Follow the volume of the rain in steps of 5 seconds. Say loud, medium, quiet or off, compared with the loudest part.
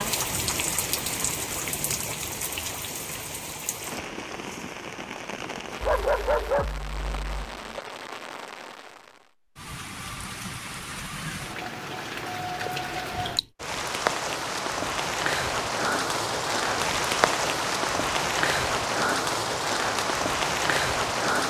medium, quiet, medium, loud, loud.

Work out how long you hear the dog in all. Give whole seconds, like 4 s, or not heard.
2 s.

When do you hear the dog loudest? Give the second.
6 s.